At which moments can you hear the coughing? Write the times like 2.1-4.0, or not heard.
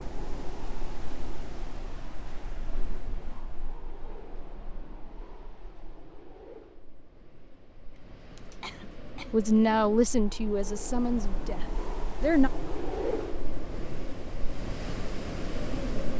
8.0-9.5.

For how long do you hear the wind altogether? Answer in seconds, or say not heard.
16 s.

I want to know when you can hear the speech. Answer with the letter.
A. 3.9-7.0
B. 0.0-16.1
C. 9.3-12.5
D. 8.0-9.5
C.